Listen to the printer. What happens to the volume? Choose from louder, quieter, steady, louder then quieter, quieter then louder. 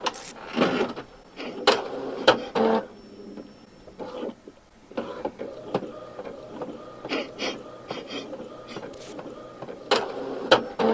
quieter then louder.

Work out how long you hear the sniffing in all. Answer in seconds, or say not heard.
3 s.